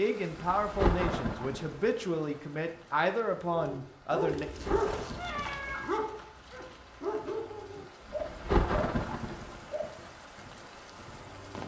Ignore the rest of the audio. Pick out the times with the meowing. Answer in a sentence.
The meowing can be heard from 5.2 to 5.9 s.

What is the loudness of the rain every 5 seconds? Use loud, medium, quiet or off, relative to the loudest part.
loud, loud, medium.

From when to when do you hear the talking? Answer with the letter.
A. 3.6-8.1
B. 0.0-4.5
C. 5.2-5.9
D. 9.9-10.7
B.